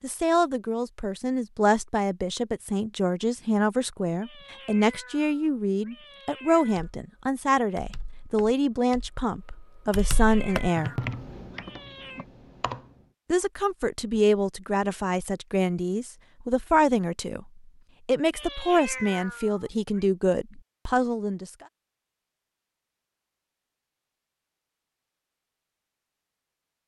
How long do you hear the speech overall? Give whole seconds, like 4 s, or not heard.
19 s.